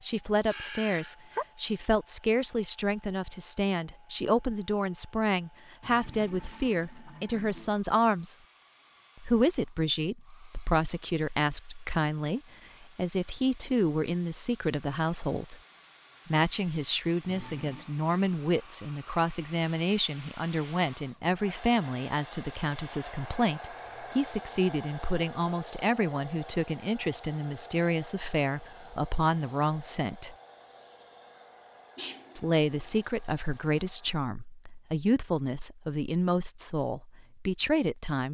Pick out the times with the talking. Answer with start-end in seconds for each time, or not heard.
0.0-8.4, 9.2-15.6, 16.2-30.4, 32.4-38.2.